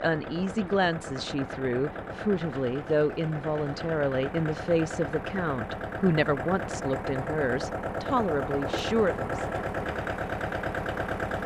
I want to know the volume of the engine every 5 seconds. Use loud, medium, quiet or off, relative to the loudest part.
medium, loud, loud.